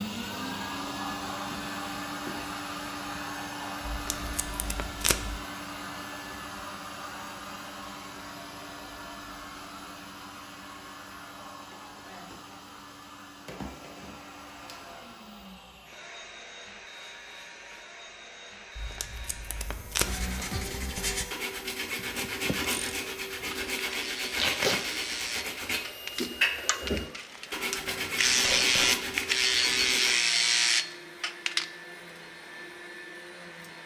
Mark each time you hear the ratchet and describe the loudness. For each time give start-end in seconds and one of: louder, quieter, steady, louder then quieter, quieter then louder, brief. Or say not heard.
21.9-31.6 louder.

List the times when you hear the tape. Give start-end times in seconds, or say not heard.
3.9-5.4, 18.8-20.3, 24.4-24.8.